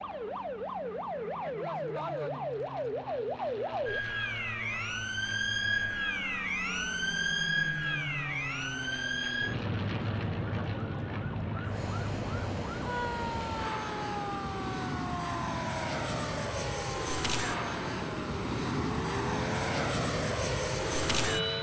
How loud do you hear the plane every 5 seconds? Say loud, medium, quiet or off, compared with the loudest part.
quiet, medium, medium, loud, loud.